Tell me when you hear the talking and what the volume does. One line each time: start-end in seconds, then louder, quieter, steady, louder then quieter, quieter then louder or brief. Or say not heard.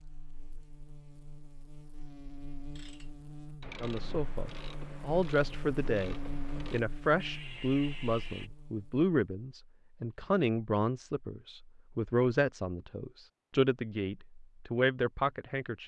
3.8-15.8 steady.